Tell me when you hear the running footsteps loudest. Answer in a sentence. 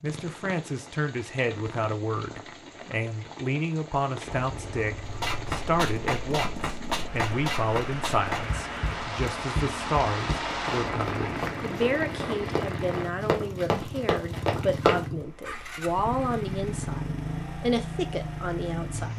The loudest moment of the running footsteps is at 15 seconds.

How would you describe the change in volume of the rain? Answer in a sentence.
The loudness of the rain goes up.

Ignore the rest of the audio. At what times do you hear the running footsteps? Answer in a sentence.
The running footsteps can be heard from 5.0 to 15.1 s.